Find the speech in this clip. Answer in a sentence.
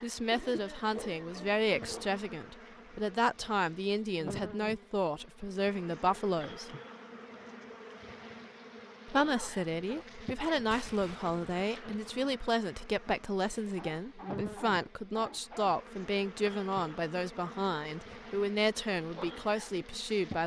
You can hear the speech from 0.0 to 6.7 s and from 9.1 to 20.4 s.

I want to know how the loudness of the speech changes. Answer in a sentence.
The volume of the speech stays about the same.